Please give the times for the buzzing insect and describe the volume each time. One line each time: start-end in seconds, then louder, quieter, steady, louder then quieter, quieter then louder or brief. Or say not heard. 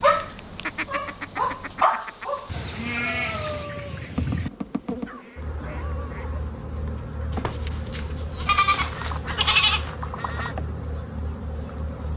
0.2-12.1 louder.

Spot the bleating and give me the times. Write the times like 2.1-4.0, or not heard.
2.5-4.5, 7.3-9.8.